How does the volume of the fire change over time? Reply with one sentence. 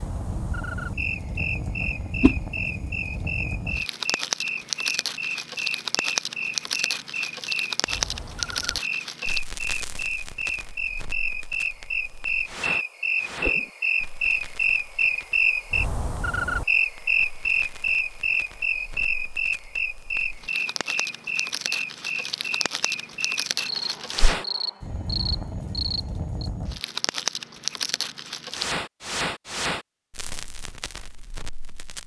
The volume of the fire goes down, then up.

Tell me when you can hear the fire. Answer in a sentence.
You can hear the fire from 0.0 to 32.0 s.